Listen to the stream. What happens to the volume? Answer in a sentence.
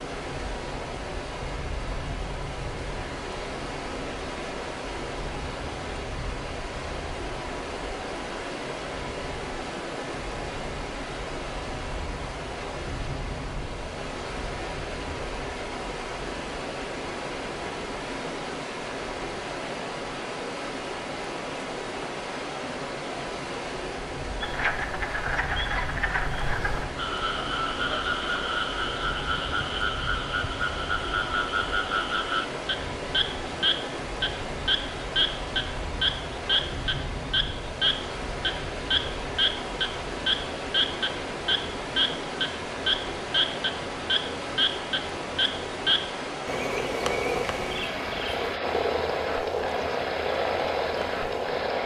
The volume of the stream stays about the same.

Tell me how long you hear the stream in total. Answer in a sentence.
The stream can be heard for 52 seconds in total.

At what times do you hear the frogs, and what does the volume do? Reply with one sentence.
The frogs can be heard from 24.4 to 51.8 s, at a steady volume.